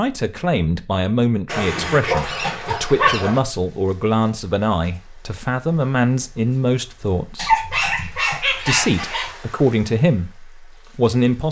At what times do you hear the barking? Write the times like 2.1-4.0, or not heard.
1.4-3.4, 7.3-9.3.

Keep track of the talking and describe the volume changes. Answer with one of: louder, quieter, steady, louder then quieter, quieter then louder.
steady.